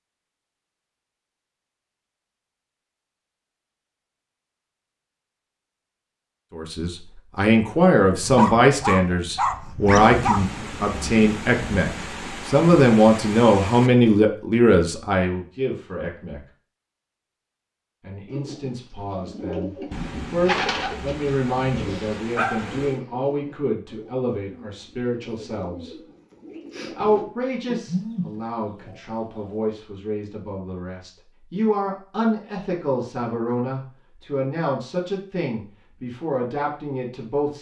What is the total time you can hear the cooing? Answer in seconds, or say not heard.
11 s.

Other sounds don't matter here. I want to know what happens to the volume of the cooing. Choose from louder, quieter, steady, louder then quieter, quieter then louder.
quieter then louder.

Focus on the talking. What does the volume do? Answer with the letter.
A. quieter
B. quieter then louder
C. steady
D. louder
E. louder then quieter
A.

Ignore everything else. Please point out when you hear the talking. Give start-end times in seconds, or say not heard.
6.5-16.4, 18.0-25.9, 26.9-37.5.